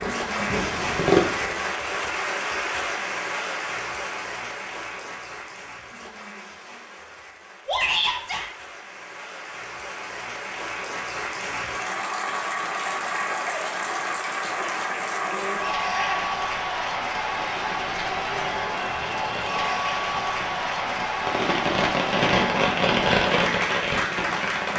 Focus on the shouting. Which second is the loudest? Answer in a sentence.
The loudest moment of the shouting is at 8 seconds.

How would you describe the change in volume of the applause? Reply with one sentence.
The loudness of the applause goes down, then up.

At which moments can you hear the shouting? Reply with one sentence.
The shouting can be heard from 7.7 to 8.5 s and from 15.8 to 16.4 s.